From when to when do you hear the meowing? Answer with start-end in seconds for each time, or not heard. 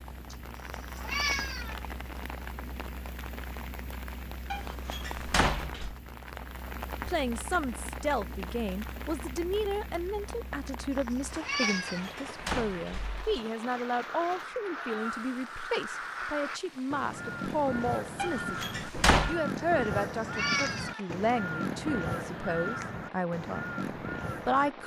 0.3-1.9, 10.7-12.1, 19.6-21.4.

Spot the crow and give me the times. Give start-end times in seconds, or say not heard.
13.7-24.8.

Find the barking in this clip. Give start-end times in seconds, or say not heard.
not heard.